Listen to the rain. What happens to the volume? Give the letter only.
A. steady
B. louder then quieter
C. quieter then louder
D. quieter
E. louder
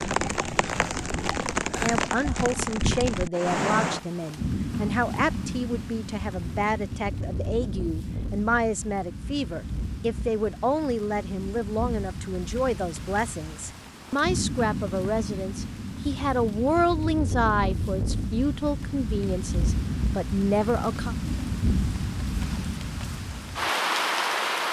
C.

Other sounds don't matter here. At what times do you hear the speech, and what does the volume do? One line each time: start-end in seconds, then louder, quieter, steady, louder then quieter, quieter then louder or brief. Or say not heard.
1.8-21.1 steady.